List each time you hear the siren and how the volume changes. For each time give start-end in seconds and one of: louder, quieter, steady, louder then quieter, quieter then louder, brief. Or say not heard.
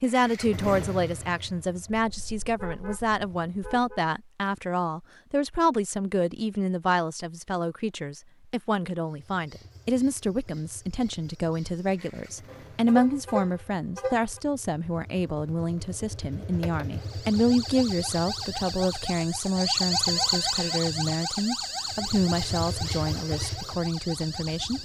16.9-24.8 louder then quieter.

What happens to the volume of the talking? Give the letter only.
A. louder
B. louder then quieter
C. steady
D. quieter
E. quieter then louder
C.